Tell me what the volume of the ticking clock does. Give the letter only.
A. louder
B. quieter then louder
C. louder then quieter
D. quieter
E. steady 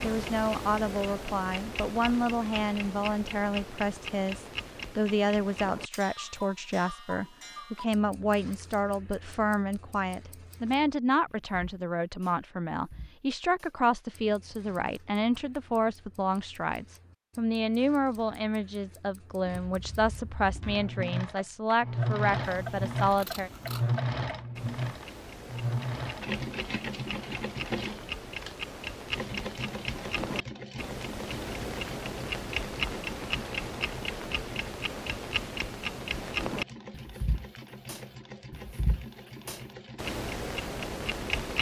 B.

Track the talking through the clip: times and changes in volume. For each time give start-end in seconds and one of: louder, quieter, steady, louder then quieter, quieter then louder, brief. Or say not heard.
0.0-23.5 steady.